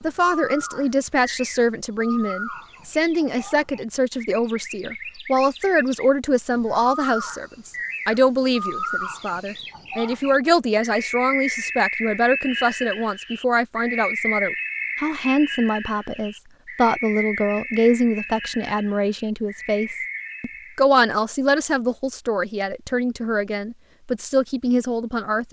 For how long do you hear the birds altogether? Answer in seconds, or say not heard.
21 s.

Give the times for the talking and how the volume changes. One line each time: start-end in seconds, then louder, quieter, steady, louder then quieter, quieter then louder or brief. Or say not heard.
0.0-25.4 steady.